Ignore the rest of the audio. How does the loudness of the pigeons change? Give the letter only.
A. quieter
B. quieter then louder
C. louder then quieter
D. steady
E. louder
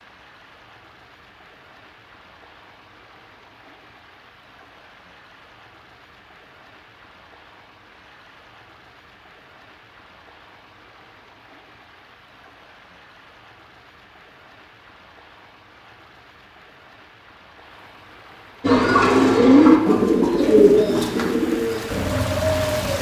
A.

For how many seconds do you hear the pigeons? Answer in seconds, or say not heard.
4 s.